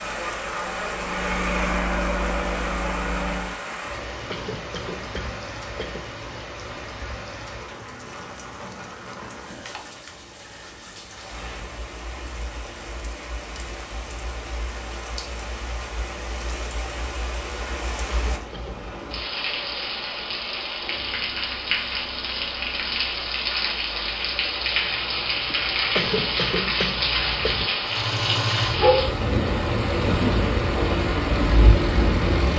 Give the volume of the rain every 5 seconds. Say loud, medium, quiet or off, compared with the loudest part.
medium, quiet, quiet, medium, loud, loud, loud.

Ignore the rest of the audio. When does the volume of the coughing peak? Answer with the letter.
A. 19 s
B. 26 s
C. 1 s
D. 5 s
B.